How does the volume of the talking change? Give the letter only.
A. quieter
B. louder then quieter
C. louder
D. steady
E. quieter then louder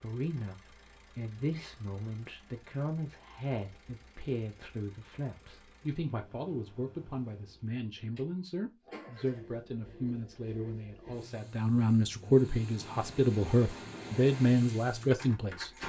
C.